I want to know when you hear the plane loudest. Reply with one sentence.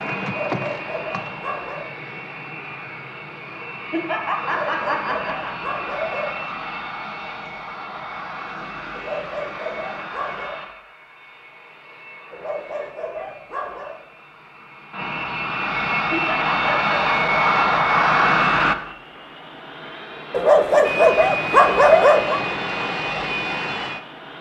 The loudest moment of the plane is at 18 seconds.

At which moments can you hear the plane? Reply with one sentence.
You can hear the plane from 0.0 to 24.3 s.